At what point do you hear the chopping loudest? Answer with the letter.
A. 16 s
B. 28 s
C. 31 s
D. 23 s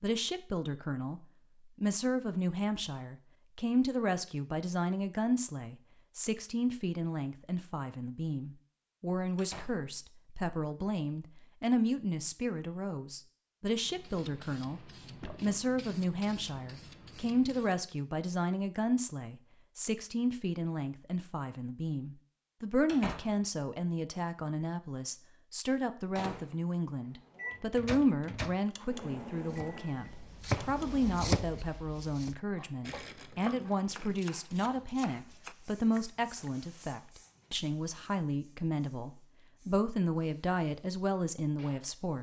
C.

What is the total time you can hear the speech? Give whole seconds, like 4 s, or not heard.
42 s.